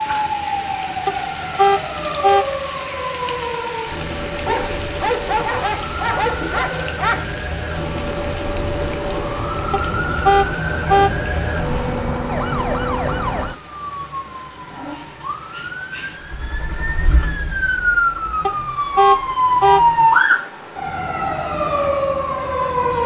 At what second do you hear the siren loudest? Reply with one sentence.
The loudest moment of the siren is at 20 seconds.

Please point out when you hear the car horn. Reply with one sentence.
You can hear the car horn from 1.1 to 2.5 s, from 9.7 to 11.2 s and from 18.4 to 19.9 s.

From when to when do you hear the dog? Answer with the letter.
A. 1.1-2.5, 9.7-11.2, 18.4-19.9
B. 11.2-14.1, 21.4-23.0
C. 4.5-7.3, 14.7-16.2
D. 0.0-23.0
C.